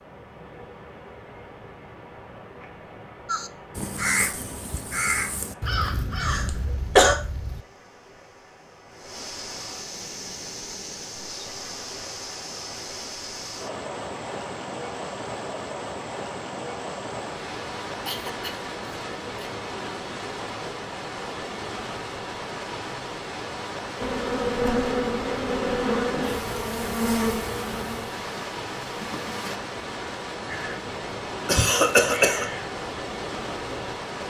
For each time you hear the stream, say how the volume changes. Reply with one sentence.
You can hear the stream from 0.0 to 34.2 s, getting louder.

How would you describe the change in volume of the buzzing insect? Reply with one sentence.
The volume of the buzzing insect goes down.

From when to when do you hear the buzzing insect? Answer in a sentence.
The buzzing insect can be heard from 24.0 to 29.6 s.